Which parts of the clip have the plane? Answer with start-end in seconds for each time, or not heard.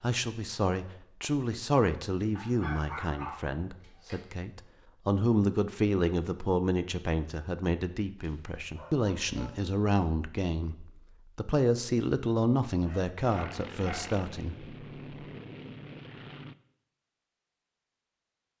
13.2-16.6.